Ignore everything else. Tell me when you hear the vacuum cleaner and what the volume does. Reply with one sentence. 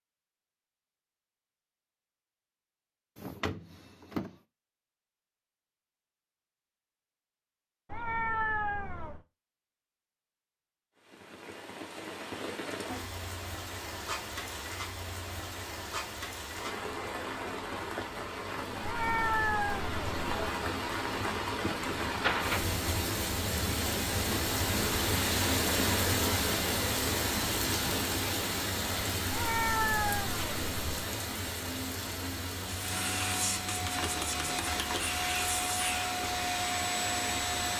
You can hear the vacuum cleaner from 32.6 to 37.7 s, at a steady volume.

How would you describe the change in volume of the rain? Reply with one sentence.
The volume of the rain goes up, then down.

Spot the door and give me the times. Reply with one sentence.
The door can be heard from 3.1 to 4.3 s and from 22.1 to 22.8 s.